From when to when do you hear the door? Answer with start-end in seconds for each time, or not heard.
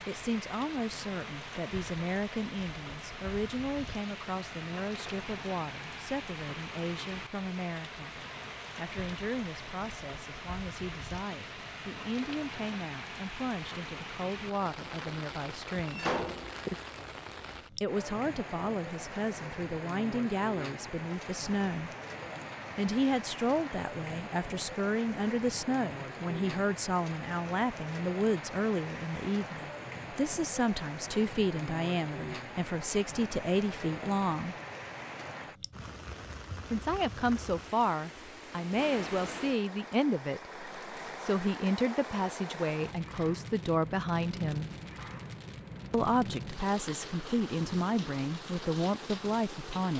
15.8-16.9.